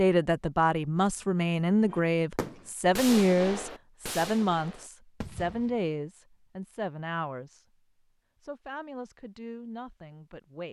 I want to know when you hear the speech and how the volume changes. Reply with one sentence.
The speech can be heard from 0.0 to 7.7 s, getting quieter; and briefly from 8.4 to 10.6 s.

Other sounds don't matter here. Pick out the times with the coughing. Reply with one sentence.
The coughing can't be heard in this clip.